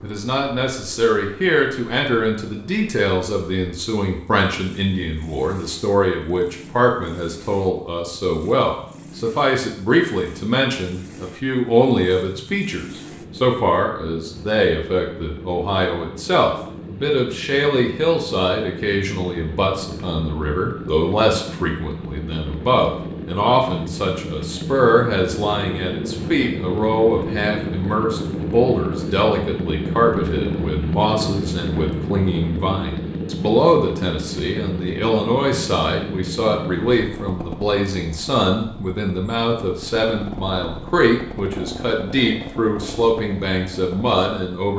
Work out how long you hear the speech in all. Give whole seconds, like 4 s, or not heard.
45 s.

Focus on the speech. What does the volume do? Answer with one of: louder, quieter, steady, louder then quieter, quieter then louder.
steady.